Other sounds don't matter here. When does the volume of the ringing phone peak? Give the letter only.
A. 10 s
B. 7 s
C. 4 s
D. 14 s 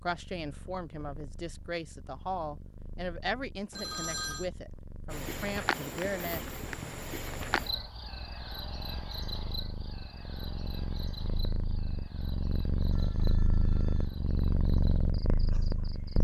C.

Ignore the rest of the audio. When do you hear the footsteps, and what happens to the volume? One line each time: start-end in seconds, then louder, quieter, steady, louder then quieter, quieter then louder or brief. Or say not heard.
not heard.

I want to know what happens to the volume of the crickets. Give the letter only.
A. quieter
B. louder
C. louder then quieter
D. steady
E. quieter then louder
A.